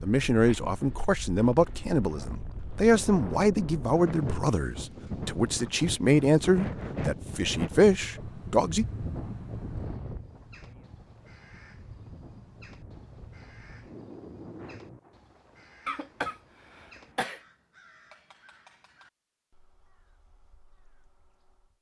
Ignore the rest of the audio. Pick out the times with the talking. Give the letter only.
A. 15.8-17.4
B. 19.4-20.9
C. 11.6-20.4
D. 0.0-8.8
D.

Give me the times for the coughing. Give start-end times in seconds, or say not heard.
15.8-17.4.